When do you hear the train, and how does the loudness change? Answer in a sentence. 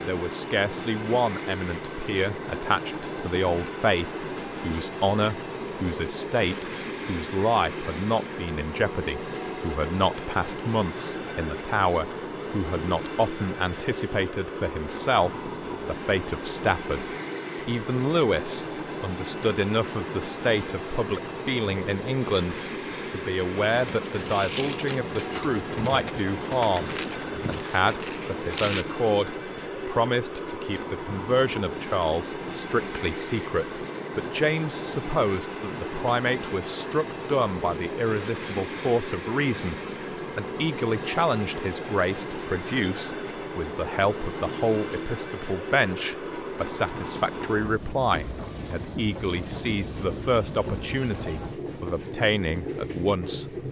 The train can be heard from 0.0 to 53.6 s, at a steady volume.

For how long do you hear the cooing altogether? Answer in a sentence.
The cooing can be heard for 5 seconds in total.